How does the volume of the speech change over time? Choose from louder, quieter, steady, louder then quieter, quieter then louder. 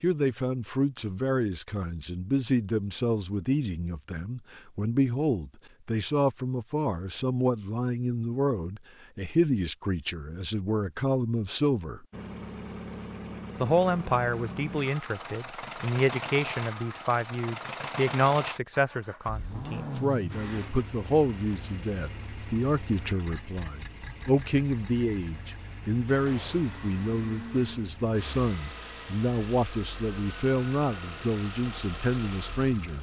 steady.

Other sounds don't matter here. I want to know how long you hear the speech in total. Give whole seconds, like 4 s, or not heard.
31 s.